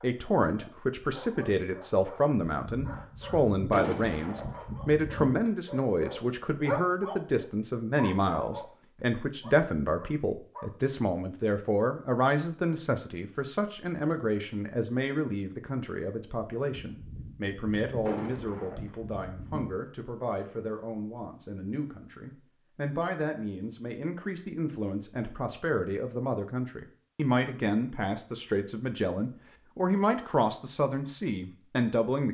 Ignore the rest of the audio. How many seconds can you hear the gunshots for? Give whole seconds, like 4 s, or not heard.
6 s.